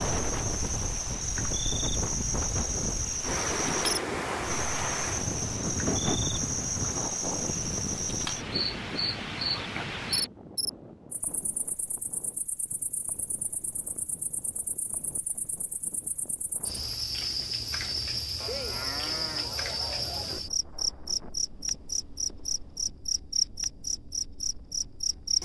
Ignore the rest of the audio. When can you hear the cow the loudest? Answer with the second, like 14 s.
19 s.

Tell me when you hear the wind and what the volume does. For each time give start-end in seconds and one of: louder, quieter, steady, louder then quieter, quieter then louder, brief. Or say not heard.
0.0-25.4 quieter.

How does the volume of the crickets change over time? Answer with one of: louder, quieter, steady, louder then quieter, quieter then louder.
quieter then louder.